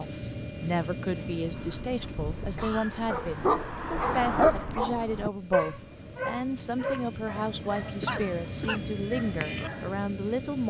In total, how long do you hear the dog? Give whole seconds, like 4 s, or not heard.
9 s.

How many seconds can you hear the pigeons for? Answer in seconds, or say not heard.
not heard.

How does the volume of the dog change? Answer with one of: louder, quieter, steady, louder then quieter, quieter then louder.
louder then quieter.